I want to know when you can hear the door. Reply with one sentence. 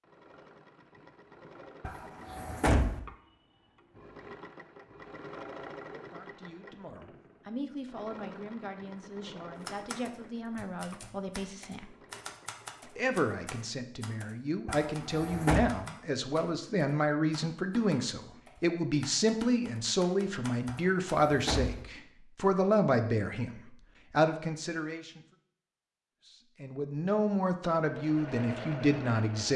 You can hear the door from 1.8 to 3.0 s, from 14.7 to 15.7 s and from 20.6 to 21.9 s.